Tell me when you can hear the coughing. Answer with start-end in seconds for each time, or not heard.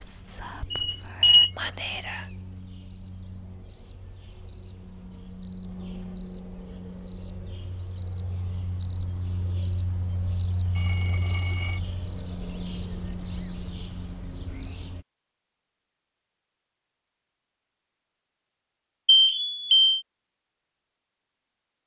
not heard.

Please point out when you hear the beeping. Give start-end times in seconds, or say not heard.
0.7-1.5, 10.8-11.8, 19.1-20.0.